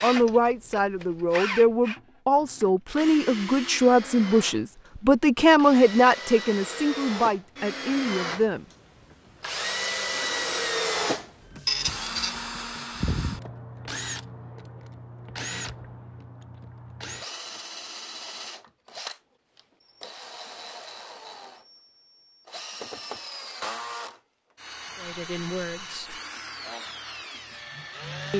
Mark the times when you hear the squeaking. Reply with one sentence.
You can hear the squeaking from 11.7 to 12.3 s.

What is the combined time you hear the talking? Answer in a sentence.
The talking can be heard for 10 seconds in total.